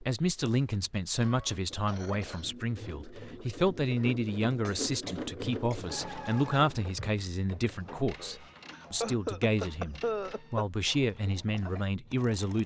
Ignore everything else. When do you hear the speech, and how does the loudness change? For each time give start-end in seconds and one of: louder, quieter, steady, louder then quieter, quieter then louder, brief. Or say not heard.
0.0-12.6 steady.